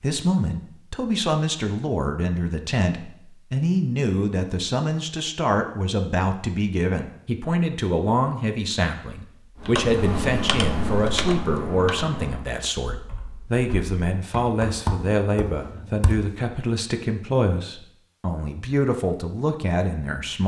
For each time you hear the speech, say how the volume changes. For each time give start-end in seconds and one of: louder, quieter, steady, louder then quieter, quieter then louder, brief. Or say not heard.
0.0-20.4 steady.